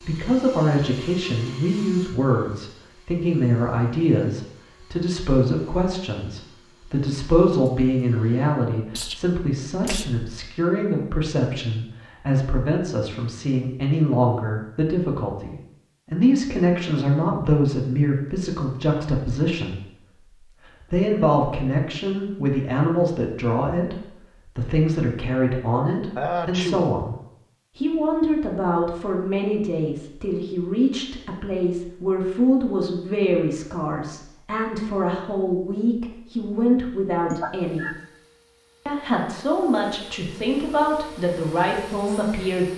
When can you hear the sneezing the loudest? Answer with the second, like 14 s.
26 s.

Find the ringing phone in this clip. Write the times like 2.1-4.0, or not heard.
not heard.